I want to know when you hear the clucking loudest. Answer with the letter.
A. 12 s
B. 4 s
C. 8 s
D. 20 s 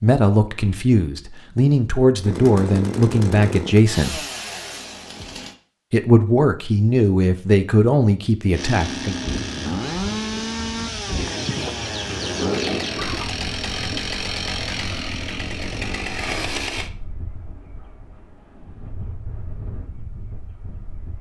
A.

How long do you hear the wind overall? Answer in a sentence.
You can hear the wind for 12 seconds altogether.